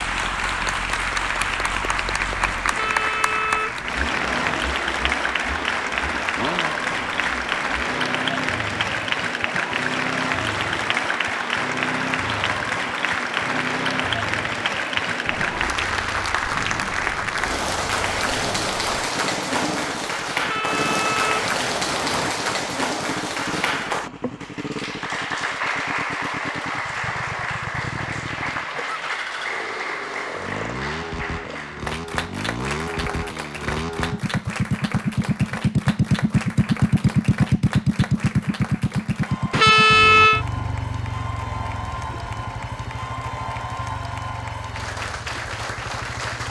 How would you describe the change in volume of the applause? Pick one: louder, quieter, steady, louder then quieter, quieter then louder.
quieter.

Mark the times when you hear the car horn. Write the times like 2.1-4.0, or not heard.
2.7-4.6, 20.4-22.4, 39.5-40.5.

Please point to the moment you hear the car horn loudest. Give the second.
40 s.